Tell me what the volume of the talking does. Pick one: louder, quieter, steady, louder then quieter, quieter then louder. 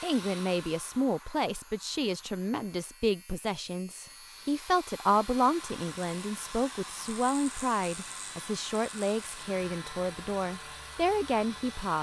steady.